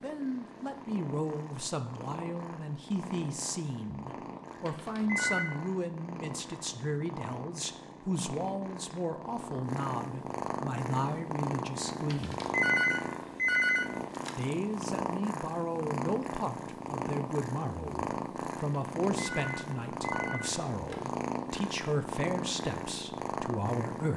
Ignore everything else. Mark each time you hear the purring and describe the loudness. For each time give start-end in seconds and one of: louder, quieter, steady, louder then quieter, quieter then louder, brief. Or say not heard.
0.0-24.1 louder.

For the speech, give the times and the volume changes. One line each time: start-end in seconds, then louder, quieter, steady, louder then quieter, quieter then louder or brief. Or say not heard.
0.0-12.4 steady
14.3-24.1 steady.